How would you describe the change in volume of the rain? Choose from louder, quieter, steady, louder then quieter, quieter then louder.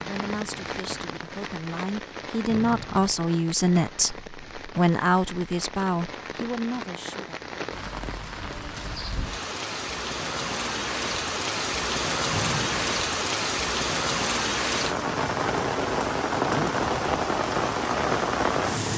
louder.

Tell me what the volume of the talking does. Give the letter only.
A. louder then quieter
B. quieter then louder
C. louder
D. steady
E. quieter
A.